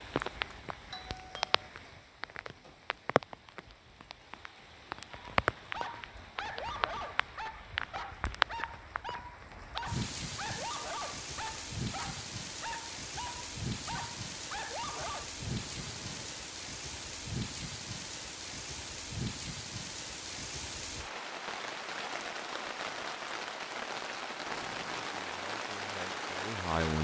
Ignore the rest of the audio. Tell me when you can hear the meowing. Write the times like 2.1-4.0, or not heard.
not heard.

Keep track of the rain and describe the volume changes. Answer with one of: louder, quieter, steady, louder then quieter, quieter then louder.
steady.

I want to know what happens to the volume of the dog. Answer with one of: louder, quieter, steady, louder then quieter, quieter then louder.
steady.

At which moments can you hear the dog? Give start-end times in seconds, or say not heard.
5.1-15.3.